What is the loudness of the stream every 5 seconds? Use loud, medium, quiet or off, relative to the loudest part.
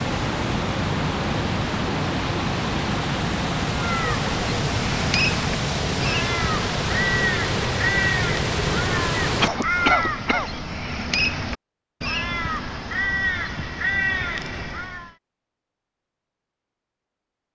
loud, loud, off, off.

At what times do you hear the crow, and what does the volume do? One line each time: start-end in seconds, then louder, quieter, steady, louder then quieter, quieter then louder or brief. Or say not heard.
3.7-15.1 steady.